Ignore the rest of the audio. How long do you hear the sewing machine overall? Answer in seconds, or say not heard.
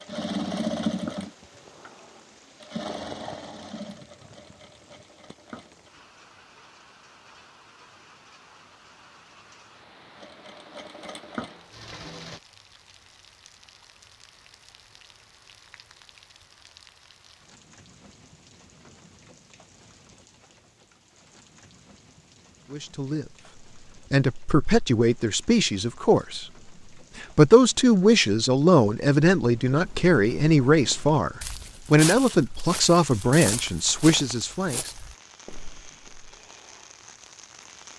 8 s.